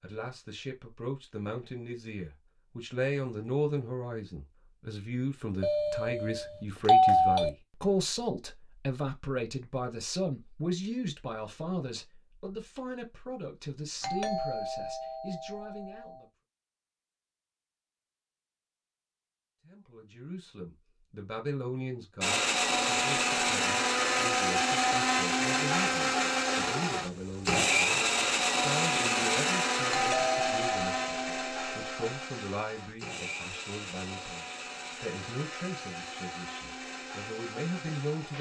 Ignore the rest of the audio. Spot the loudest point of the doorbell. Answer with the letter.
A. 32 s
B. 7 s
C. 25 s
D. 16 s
B.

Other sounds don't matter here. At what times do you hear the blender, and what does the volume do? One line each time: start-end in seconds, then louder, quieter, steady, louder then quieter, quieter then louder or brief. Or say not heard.
22.2-38.3 quieter.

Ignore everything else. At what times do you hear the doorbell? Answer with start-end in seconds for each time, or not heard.
5.6-7.5, 14.0-16.2, 29.9-32.1.